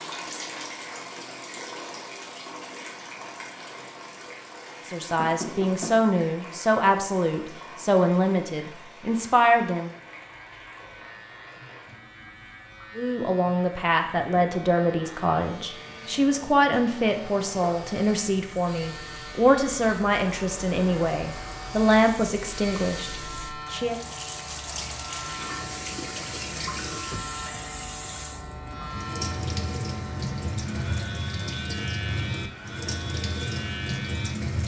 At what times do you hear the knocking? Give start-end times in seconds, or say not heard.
5.2-6.0.